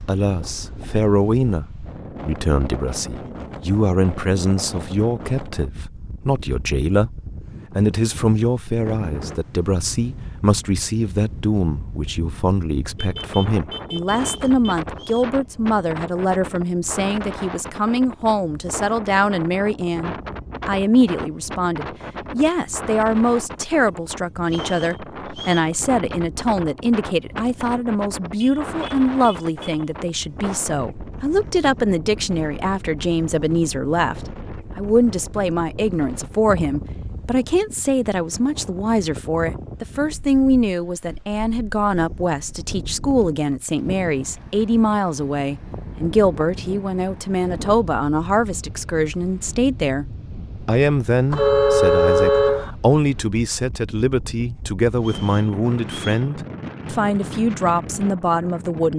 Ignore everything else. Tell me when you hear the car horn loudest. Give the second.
52 s.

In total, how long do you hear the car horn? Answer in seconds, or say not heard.
5 s.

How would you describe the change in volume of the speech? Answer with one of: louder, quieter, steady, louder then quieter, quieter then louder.
steady.